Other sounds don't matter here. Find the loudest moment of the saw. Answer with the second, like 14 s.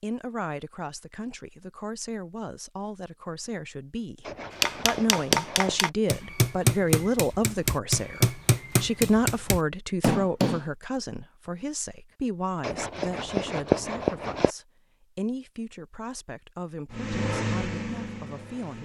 14 s.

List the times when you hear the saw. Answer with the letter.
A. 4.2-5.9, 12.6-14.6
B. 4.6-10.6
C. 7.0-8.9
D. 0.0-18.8
A.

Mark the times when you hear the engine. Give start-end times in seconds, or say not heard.
16.9-18.8.